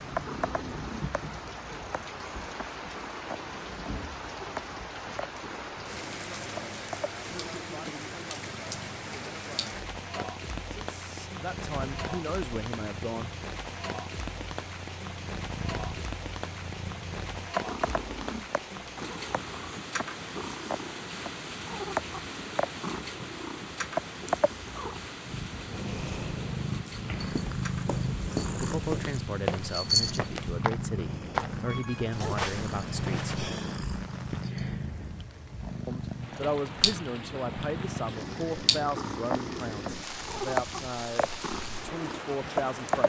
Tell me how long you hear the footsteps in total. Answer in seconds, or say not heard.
6 s.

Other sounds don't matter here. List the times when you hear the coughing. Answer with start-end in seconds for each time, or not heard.
31.6-32.4.